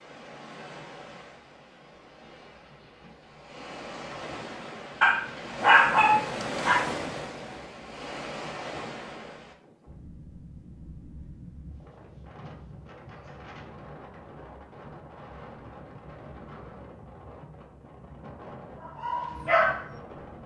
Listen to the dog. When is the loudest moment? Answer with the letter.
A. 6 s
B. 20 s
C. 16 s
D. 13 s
A.